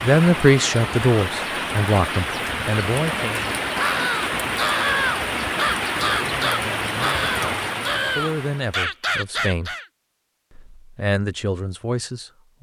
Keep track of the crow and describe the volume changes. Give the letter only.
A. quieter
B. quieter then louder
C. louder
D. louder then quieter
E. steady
E.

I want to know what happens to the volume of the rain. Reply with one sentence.
The loudness of the rain stays about the same.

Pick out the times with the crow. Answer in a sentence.
The crow can be heard from 3.8 to 9.8 s.